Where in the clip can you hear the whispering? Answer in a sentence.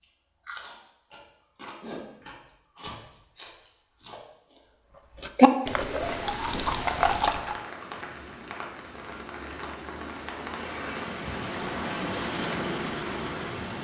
The whispering can't be heard in this clip.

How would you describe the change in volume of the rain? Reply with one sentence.
The loudness of the rain goes up.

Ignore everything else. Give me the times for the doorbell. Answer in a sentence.
The doorbell can't be heard in this clip.